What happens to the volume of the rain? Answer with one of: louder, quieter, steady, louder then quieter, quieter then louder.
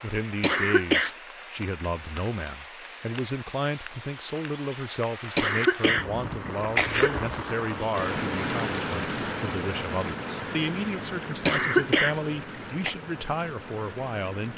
louder then quieter.